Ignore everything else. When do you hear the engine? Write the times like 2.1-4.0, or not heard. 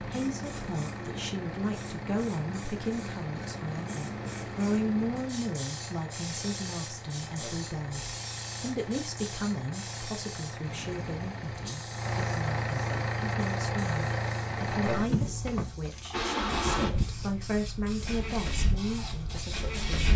0.0-20.1.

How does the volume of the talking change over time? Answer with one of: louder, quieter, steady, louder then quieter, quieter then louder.
steady.